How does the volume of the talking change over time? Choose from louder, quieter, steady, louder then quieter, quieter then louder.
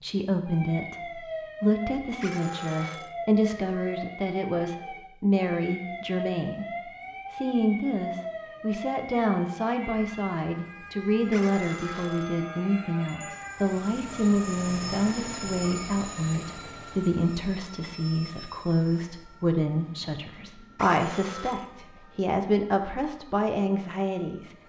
steady.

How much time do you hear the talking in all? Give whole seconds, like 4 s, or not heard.
24 s.